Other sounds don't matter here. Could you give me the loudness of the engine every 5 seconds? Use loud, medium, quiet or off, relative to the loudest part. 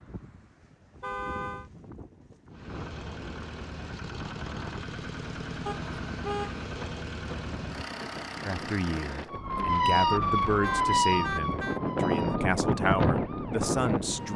loud, loud, off.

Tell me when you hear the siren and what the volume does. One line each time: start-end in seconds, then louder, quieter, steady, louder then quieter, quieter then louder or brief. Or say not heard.
9.3-14.3 quieter.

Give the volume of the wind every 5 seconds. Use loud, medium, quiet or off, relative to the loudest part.
quiet, quiet, loud.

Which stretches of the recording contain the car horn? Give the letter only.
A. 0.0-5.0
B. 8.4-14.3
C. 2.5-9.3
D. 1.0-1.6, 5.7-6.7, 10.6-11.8
D.